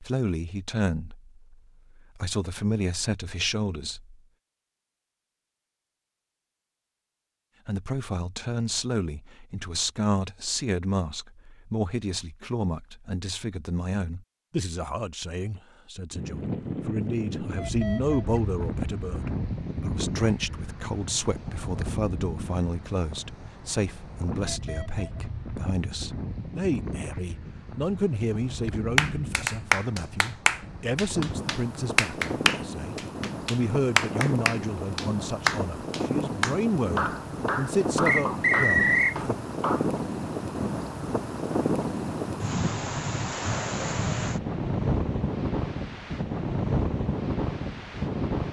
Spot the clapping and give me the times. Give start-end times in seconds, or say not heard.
28.9-39.9.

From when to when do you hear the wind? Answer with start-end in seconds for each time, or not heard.
16.1-48.4.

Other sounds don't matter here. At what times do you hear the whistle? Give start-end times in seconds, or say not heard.
38.0-39.1.